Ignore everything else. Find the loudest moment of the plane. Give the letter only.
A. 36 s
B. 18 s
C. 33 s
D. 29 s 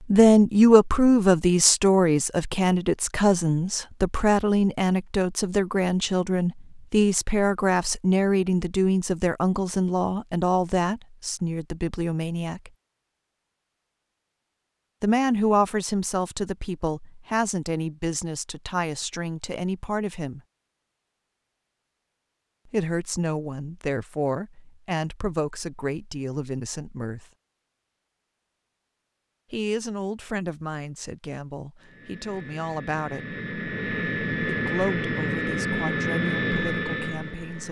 A.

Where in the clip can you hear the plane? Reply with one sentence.
The plane can be heard from 31.8 to 37.6 s.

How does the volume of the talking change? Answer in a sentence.
The loudness of the talking goes down.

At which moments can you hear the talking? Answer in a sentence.
The talking can be heard from 0.1 to 12.7 s, from 15.0 to 20.4 s, from 22.7 to 27.2 s, from 29.5 to 33.4 s and from 34.5 to 37.6 s.